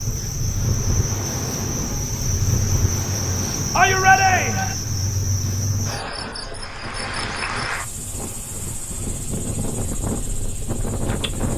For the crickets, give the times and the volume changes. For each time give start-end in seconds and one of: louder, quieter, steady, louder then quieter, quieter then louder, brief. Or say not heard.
0.0-11.5 quieter.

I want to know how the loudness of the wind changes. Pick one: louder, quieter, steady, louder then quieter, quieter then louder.
quieter then louder.